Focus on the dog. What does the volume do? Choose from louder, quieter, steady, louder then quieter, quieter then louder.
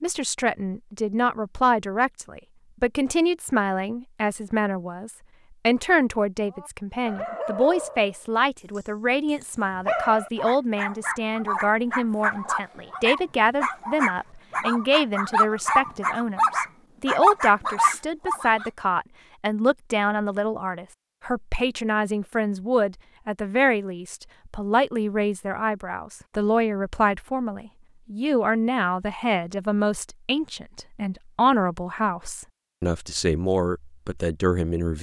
louder.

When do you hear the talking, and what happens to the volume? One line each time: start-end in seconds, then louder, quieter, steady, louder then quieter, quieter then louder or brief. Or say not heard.
0.0-34.9 steady.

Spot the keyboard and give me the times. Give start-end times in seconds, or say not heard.
not heard.